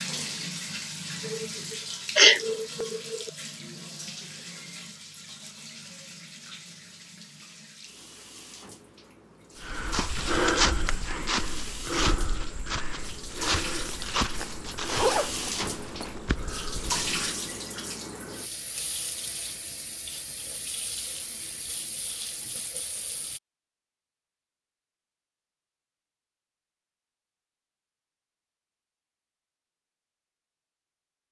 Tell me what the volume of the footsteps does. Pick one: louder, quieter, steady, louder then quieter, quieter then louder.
quieter.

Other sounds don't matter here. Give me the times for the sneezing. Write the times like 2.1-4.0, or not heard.
1.2-3.3.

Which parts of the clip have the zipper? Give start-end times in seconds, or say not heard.
14.3-16.2.